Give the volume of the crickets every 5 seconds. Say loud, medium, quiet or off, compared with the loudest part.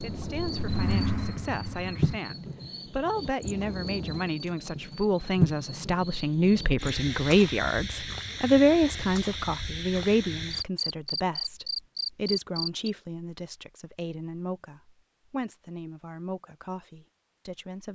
medium, loud, loud, off.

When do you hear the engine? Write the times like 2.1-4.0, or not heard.
0.0-2.2.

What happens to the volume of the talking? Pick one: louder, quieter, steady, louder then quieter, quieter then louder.
louder then quieter.